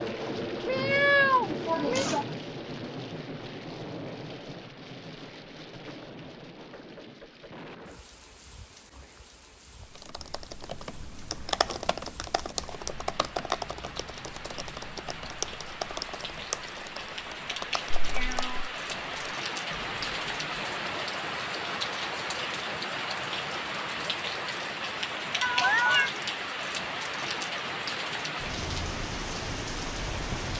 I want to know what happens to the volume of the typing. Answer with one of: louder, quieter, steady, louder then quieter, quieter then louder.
quieter.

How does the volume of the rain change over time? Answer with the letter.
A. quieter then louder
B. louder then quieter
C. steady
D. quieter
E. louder
A.